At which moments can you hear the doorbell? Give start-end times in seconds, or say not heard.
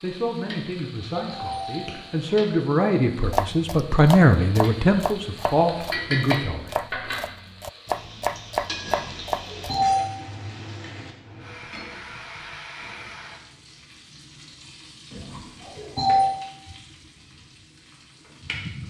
1.3-2.0, 8.8-10.1, 15.2-16.3.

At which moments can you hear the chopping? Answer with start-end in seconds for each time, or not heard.
3.2-9.9.